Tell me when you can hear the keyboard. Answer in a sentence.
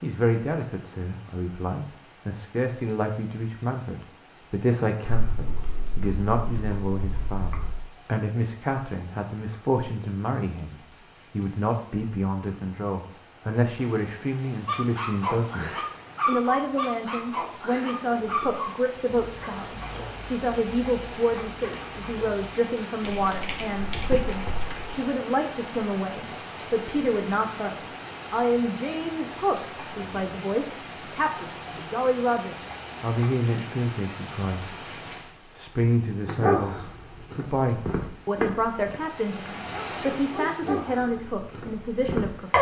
The keyboard can be heard from 5.0 to 7.8 s and from 23.0 to 24.9 s.